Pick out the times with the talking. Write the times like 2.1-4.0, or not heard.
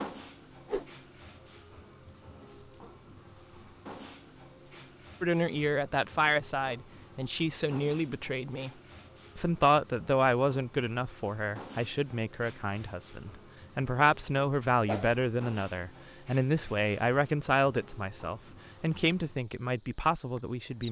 5.2-8.7, 9.3-20.8.